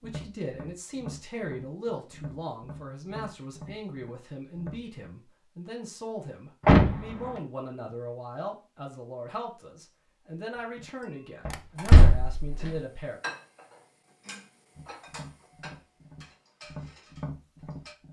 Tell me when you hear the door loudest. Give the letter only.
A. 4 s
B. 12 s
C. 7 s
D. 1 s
C.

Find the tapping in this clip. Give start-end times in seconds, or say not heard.
0.0-5.0, 10.6-11.9, 14.8-18.0.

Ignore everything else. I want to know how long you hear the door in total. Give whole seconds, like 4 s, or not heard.
2 s.